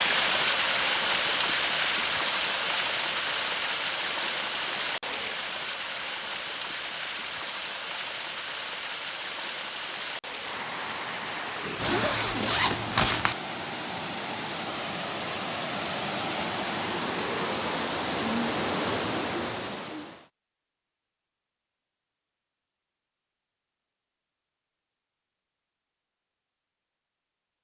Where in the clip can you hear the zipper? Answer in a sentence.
You can hear the zipper from 11.8 to 13.3 s.